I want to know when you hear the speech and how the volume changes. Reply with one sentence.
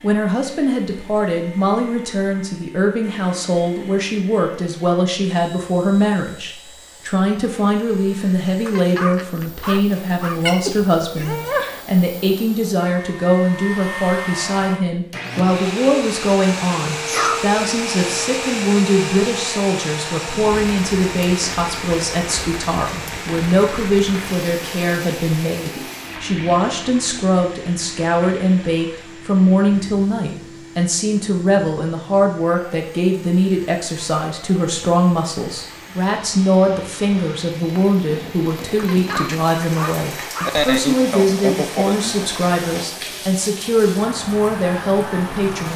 You can hear the speech from 0.0 to 45.7 s, at a steady volume.